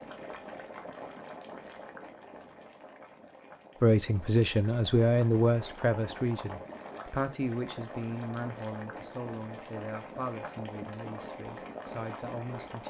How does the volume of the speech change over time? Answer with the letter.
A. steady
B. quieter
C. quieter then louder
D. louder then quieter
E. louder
B.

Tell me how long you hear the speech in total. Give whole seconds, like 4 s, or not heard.
9 s.